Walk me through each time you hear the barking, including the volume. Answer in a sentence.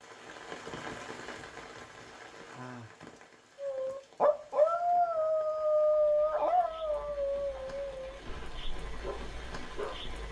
The barking can be heard from 3.5 to 10.2 s, getting quieter.